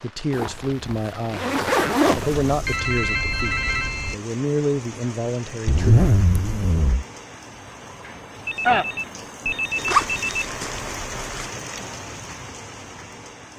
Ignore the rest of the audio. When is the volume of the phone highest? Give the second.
9 s.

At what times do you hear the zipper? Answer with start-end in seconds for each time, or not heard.
0.3-2.8, 5.7-7.0, 9.8-11.5.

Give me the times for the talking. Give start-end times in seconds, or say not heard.
0.0-6.0.